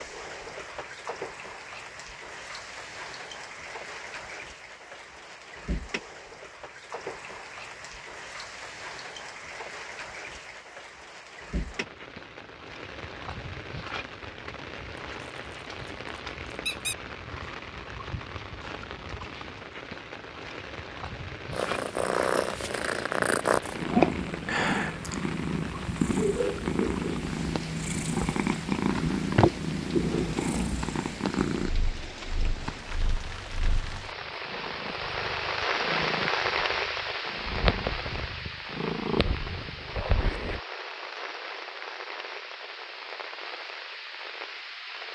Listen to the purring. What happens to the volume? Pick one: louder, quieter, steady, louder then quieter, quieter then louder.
quieter then louder.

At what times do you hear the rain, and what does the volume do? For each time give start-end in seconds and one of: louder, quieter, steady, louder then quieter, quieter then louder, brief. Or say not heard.
0.0-45.0 louder.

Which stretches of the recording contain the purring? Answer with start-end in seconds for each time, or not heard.
21.5-40.6.